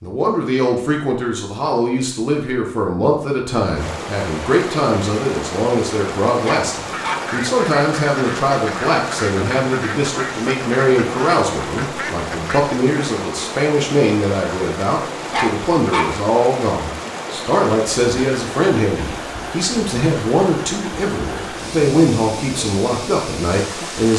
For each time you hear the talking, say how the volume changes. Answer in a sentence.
You can hear the talking from 0.0 to 24.1 s, at a steady volume.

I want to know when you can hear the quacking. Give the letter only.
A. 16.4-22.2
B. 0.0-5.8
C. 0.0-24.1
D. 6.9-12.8
D.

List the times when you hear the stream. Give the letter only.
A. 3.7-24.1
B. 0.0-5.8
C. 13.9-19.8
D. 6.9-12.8
A.